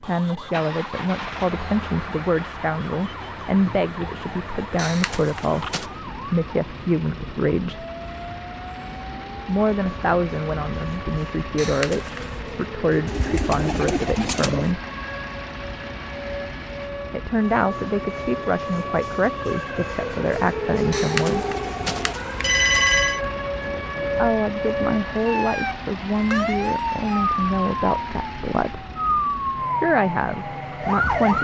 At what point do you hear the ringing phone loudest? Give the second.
23 s.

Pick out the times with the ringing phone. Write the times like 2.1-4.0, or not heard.
4.8-5.8, 11.6-12.3, 20.9-23.2.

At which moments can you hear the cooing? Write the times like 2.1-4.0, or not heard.
13.1-14.8.